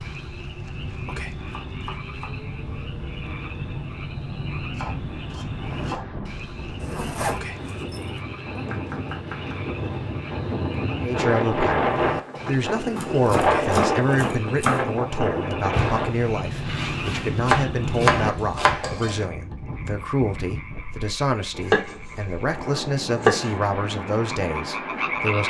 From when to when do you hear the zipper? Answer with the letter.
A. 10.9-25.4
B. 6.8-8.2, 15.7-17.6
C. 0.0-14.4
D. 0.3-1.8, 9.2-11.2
B.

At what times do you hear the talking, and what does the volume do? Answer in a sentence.
You can hear the talking from 10.9 to 25.4 s, at a steady volume.